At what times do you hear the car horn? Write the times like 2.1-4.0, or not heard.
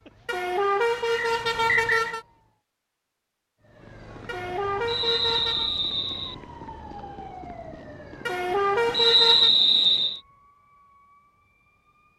0.2-2.2, 4.2-5.7, 8.2-9.5.